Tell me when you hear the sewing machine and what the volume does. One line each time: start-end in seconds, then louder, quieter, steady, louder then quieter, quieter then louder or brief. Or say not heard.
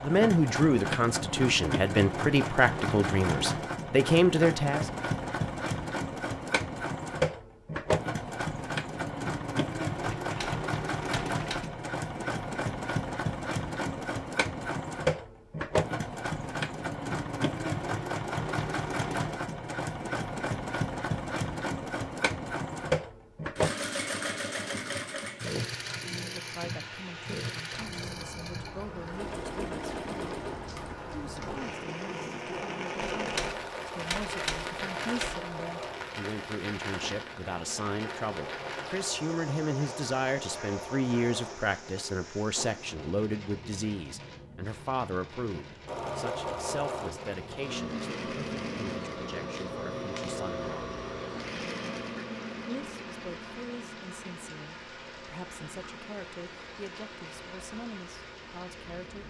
0.0-43.1 quieter
45.9-59.2 quieter.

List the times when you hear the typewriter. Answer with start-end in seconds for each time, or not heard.
10.2-11.8, 33.0-35.9.